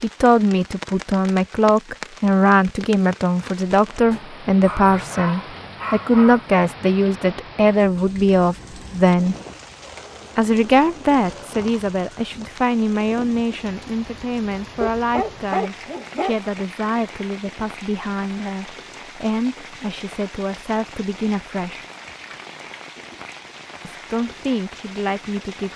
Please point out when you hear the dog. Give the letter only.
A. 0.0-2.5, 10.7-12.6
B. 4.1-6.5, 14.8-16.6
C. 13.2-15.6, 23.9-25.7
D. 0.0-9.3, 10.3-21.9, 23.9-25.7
B.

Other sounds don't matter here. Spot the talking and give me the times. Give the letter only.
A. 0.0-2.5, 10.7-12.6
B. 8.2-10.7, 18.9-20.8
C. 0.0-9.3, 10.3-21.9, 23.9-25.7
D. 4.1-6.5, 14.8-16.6
C.